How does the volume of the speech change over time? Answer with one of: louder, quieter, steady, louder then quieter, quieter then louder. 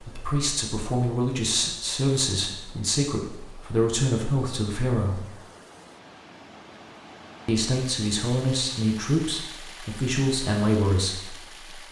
steady.